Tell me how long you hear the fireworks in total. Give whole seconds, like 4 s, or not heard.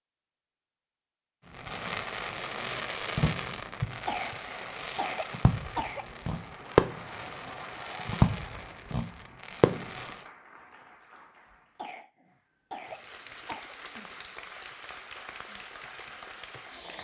9 s.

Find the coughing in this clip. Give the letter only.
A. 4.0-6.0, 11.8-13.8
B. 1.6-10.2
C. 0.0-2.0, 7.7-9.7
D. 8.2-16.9
A.